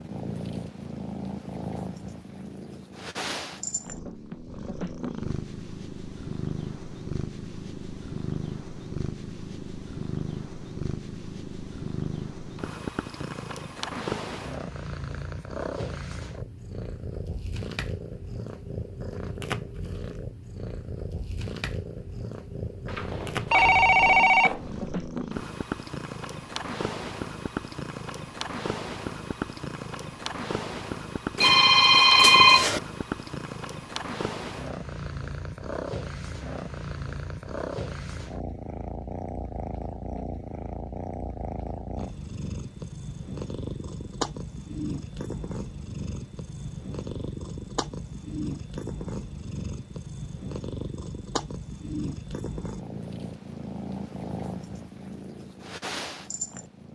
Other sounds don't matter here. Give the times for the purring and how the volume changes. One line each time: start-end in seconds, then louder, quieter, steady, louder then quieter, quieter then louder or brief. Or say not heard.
0.0-56.8 steady.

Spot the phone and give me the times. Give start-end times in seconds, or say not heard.
22.9-24.6, 31.4-32.8.